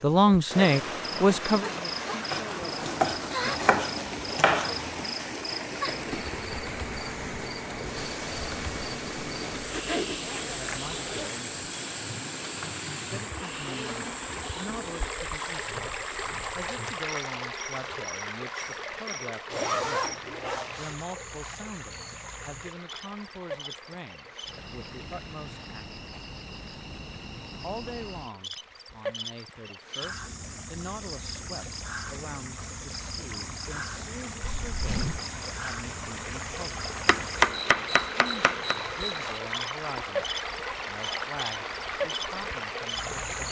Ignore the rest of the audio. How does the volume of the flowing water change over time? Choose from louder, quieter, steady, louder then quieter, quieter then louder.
quieter then louder.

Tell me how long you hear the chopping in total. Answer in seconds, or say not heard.
4 s.